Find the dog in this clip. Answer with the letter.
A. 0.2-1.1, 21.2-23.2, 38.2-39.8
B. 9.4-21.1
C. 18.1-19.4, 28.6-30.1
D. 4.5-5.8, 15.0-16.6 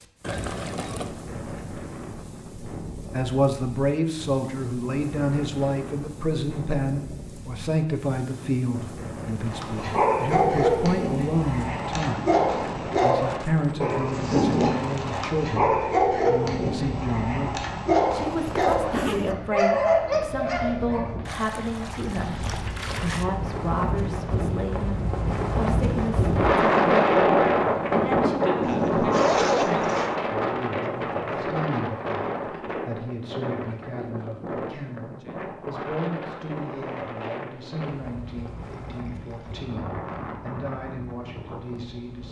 B.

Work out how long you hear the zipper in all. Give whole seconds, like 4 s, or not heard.
3 s.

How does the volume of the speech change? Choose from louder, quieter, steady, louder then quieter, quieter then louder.
quieter.